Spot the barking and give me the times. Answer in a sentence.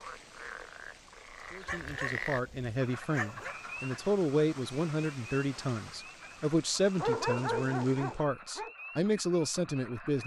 The barking can be heard from 1.6 to 3.5 s and from 7.0 to 8.7 s.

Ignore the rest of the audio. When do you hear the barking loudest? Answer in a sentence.
The loudest moment of the barking is at 7 seconds.